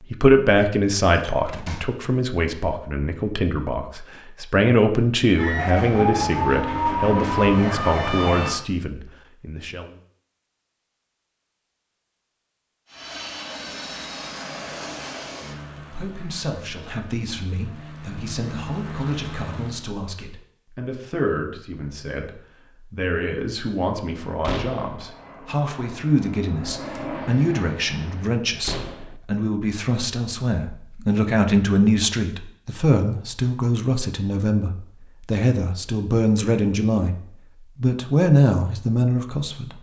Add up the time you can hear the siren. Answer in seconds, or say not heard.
3 s.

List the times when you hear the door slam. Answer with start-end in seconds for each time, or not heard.
1.1-1.9, 24.4-25.0, 28.6-29.1.